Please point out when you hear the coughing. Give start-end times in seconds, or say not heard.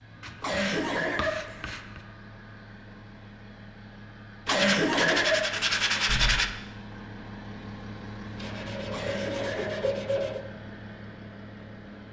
0.4-1.8, 4.5-6.3, 8.9-9.8.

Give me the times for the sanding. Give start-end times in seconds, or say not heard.
0.2-2.0, 4.5-6.5, 8.3-10.4.